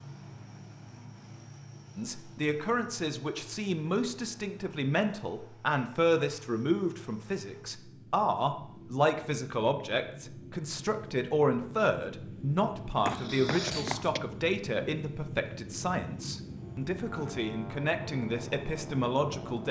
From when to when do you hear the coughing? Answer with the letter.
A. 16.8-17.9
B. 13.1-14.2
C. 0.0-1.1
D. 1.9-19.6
B.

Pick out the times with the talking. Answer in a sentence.
You can hear the talking from 1.9 to 19.6 s.